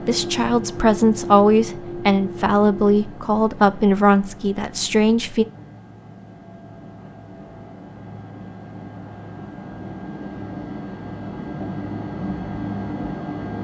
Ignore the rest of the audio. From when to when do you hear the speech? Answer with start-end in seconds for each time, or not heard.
0.1-5.5.